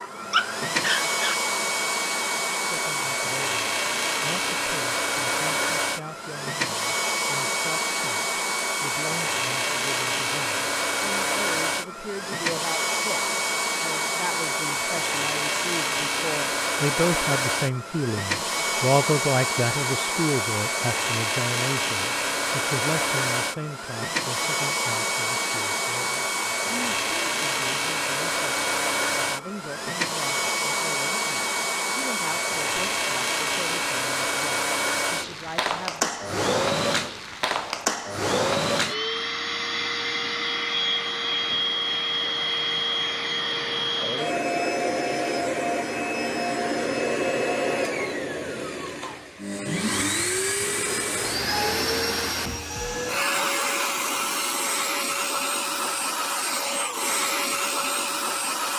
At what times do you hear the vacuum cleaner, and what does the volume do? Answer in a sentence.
The vacuum cleaner can be heard from 0.0 to 58.7 s, at a steady volume.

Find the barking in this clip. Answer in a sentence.
You can hear the barking from 0.0 to 1.4 s.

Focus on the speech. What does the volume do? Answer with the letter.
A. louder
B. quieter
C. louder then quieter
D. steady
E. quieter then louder
C.